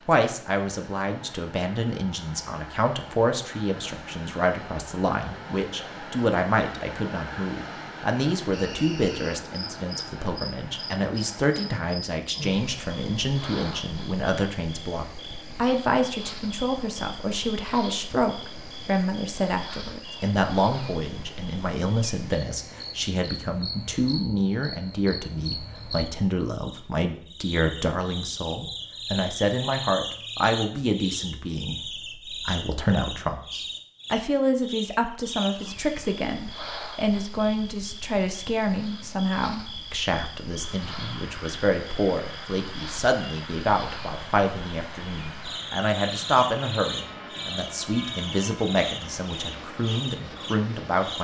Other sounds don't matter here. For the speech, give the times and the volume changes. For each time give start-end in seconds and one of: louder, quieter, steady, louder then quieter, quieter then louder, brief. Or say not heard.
0.1-51.1 steady.